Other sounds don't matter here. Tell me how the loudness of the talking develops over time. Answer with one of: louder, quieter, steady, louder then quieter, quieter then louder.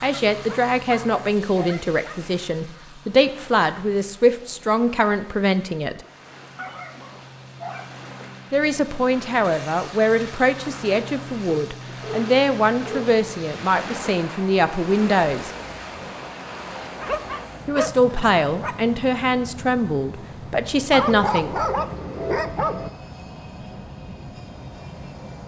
steady.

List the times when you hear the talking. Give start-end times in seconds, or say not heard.
0.0-6.0, 8.5-15.5, 17.6-21.6.